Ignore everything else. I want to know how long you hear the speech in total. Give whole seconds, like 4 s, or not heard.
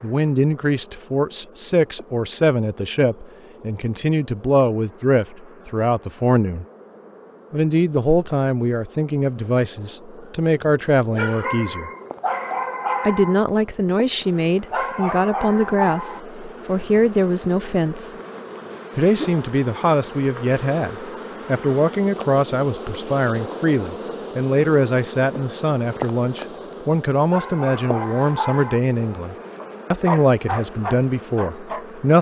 29 s.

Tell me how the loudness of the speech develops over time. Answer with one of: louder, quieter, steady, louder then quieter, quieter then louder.
steady.